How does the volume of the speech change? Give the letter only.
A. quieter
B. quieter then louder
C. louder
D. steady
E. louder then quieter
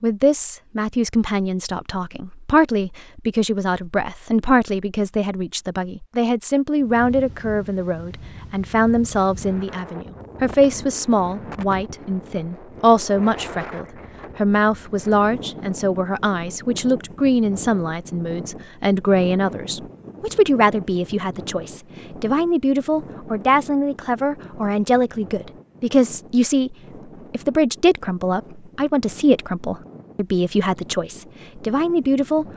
D.